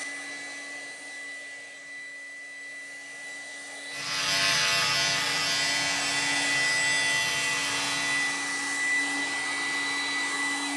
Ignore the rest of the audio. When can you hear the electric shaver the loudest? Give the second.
5 s.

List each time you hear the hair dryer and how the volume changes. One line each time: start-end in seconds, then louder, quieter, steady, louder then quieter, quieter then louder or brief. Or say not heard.
0.0-10.7 louder.